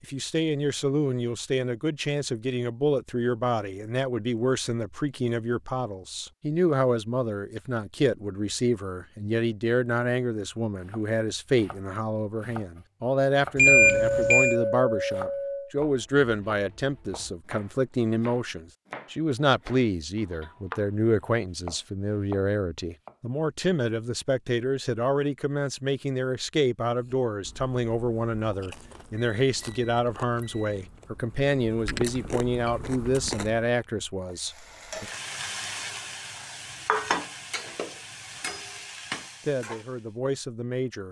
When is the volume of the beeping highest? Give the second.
14 s.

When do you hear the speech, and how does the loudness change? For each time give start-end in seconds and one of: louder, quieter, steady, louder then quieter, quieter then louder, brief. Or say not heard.
0.0-35.0 steady
39.5-41.0 brief.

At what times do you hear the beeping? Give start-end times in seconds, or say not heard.
13.6-14.6, 29.1-30.8.